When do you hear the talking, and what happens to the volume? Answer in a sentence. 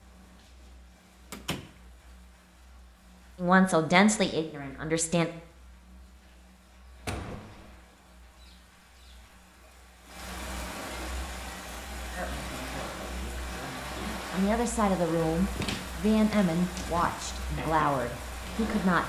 You can hear the talking briefly from 3.4 to 5.3 s; and from 12.2 to 19.0 s, getting louder.